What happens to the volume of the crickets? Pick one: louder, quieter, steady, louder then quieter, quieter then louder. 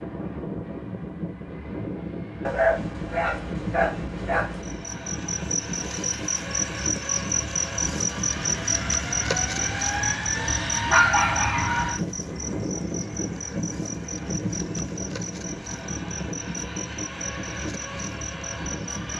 quieter.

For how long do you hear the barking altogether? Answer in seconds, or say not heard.
4 s.